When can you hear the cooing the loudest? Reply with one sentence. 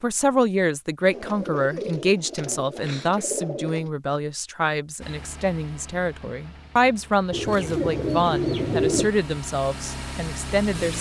The volume of the cooing peaks at 9 seconds.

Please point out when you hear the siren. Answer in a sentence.
You can't hear the siren here.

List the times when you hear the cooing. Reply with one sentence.
The cooing can be heard from 1.1 to 3.9 s and from 7.3 to 9.1 s.